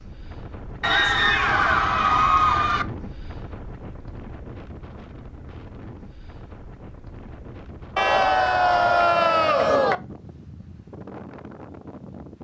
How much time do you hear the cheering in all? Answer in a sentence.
You can hear the cheering for 4 seconds altogether.